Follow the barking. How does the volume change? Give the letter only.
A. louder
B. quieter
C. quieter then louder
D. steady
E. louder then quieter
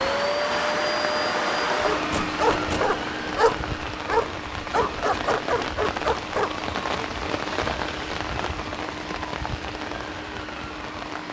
D.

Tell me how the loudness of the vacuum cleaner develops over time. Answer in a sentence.
The loudness of the vacuum cleaner goes down.